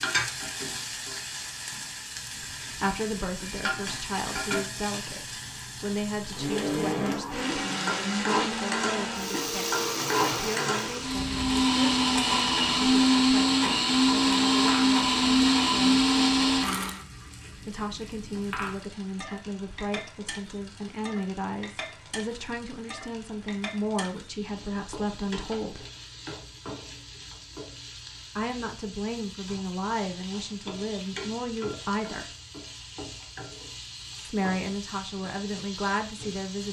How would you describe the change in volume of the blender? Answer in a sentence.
The volume of the blender goes up.